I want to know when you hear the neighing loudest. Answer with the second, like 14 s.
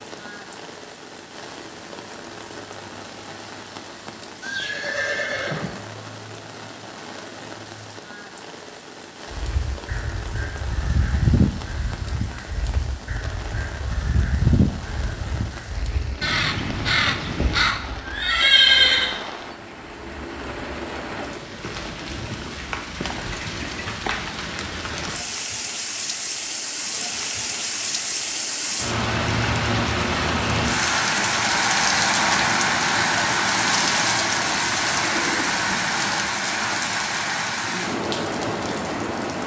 19 s.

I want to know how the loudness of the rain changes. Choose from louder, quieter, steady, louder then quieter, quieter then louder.
louder.